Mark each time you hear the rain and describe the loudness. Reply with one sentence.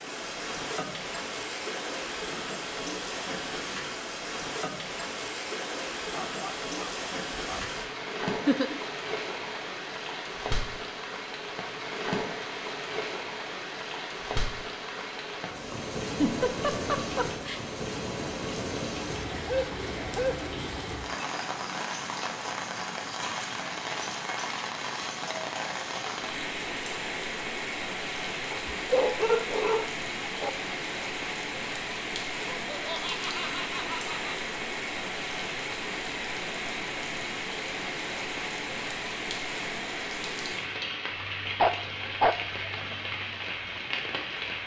You can hear the rain from 0.0 to 44.6 s, at a steady volume.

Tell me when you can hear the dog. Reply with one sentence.
The dog can be heard from 6.1 to 7.8 s, from 19.4 to 20.4 s, from 28.5 to 30.5 s and from 41.6 to 42.4 s.